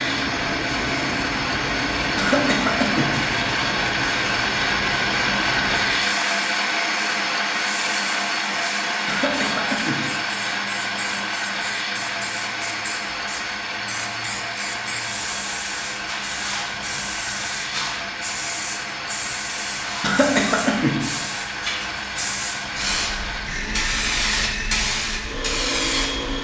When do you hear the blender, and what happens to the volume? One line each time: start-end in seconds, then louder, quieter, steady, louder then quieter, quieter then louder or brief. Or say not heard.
0.0-26.3 quieter.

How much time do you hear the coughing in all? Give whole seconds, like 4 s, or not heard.
3 s.